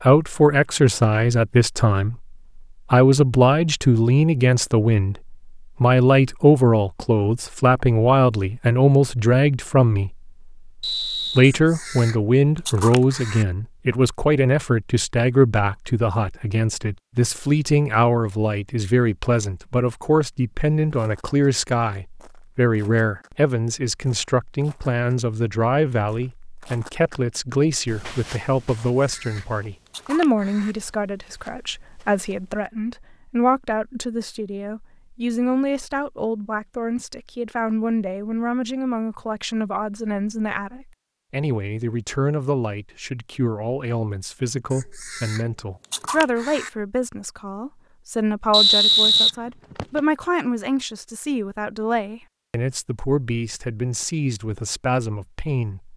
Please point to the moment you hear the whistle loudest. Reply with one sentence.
The volume of the whistle peaks at 49 seconds.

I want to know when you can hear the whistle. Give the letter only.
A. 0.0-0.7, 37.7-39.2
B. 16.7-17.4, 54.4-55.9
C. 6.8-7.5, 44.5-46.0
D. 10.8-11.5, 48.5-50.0
D.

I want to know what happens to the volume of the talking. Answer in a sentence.
The volume of the talking goes down.